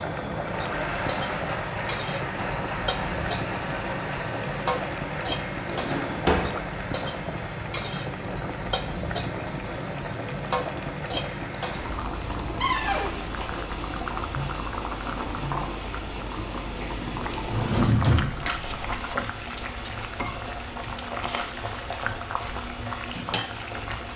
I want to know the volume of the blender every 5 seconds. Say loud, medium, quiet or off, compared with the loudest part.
loud, medium, medium, medium, medium.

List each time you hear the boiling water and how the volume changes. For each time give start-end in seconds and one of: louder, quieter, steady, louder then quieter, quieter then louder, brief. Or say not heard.
0.0-24.1 steady.